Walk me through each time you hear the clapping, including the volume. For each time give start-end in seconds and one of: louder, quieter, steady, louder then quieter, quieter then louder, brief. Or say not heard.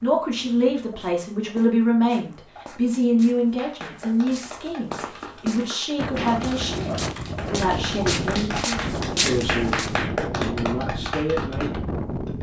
3.5-11.8 louder.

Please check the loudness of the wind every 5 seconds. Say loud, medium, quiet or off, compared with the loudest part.
off, loud, loud.